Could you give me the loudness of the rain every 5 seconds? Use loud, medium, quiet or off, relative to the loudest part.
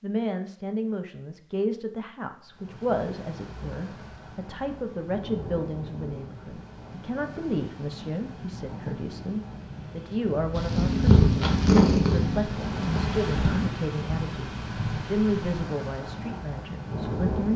medium, medium, loud, loud.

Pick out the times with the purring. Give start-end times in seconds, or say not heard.
10.6-13.7.